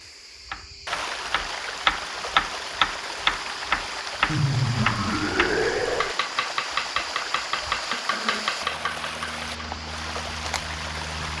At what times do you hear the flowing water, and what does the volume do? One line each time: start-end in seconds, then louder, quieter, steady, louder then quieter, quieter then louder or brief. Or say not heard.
0.0-11.3 steady.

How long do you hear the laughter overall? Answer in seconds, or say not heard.
2 s.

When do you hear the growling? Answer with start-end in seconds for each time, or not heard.
7.9-8.7.